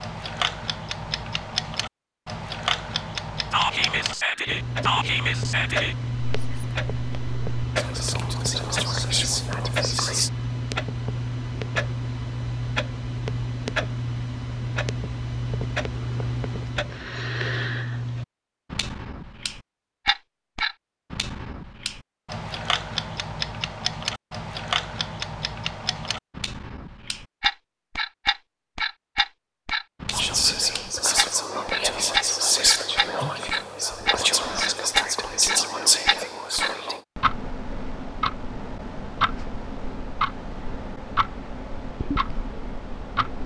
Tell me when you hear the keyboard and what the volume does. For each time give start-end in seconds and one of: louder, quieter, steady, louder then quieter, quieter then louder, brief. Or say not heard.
not heard.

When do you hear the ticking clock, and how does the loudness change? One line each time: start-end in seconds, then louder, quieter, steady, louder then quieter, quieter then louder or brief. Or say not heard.
0.0-43.4 steady.